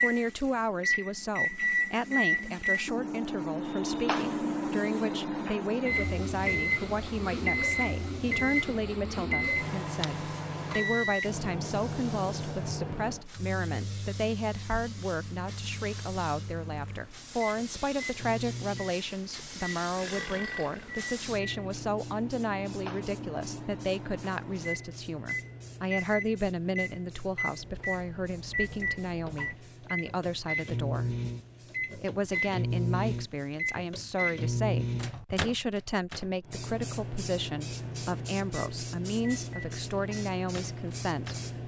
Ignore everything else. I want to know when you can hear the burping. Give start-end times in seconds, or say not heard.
19.8-21.0.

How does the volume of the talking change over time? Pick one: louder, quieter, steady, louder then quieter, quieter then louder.
steady.